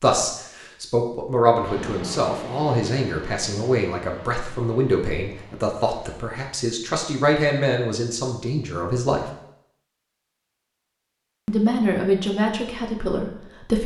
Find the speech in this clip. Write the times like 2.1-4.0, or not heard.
0.0-9.2, 11.4-13.8.